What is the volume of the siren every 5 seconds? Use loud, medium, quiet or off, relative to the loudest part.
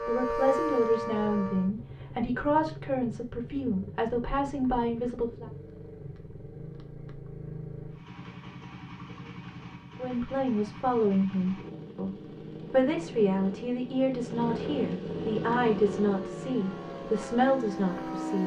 loud, off, off, medium.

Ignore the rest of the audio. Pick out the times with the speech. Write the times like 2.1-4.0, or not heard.
0.0-5.5, 9.9-18.4.